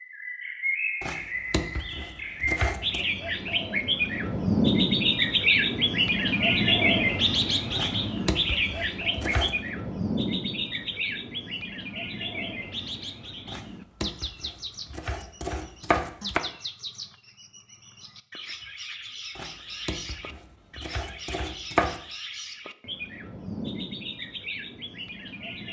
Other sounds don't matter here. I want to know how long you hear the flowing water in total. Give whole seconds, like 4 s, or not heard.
not heard.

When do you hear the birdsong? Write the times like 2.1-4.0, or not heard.
0.0-25.6.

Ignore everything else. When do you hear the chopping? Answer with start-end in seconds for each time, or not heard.
1.0-3.0, 7.8-9.6, 13.4-16.4, 19.4-22.0.